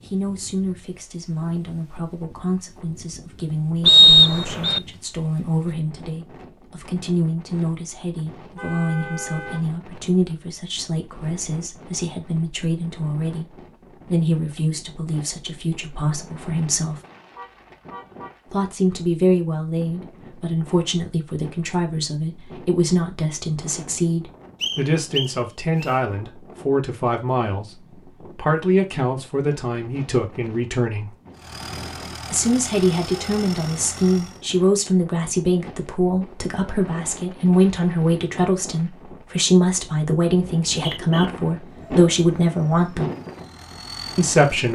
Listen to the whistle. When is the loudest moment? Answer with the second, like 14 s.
4 s.